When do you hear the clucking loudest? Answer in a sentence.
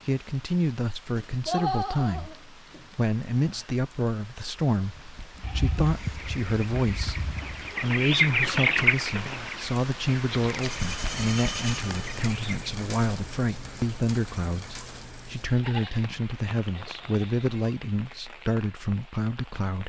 The loudest moment of the clucking is at 9 seconds.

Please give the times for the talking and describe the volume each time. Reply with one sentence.
You can hear the talking from 0.1 to 19.8 s, at a steady volume.